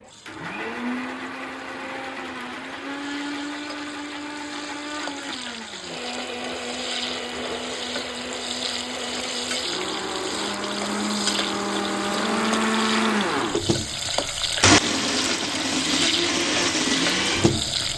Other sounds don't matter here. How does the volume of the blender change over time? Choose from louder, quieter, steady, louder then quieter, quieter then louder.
louder.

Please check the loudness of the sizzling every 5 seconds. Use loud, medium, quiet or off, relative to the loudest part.
quiet, medium, loud, loud.